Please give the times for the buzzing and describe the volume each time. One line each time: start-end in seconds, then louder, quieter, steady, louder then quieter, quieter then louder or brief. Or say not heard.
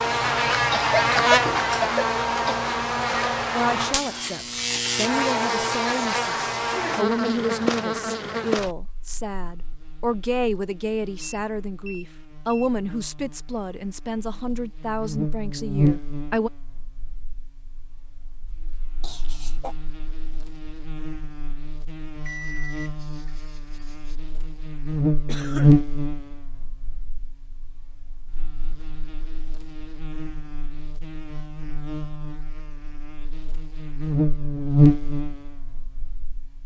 0.0-36.6 quieter then louder.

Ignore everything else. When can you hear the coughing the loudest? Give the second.
1 s.